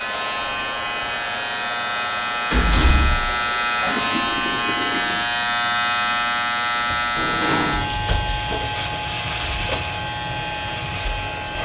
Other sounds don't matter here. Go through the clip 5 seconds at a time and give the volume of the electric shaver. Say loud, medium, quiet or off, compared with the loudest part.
loud, loud, medium.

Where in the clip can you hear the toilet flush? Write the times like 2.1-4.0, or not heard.
3.2-5.3.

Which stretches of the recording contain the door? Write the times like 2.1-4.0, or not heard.
2.5-3.2, 7.2-8.0.